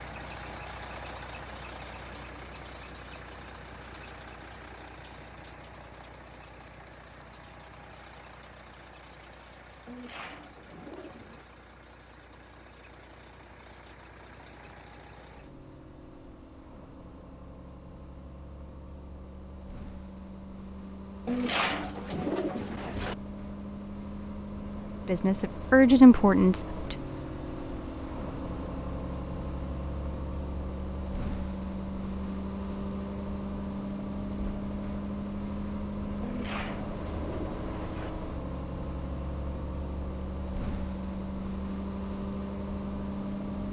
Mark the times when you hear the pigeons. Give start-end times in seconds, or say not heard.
9.8-11.4, 21.2-23.1, 36.2-38.1.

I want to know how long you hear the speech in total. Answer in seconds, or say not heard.
2 s.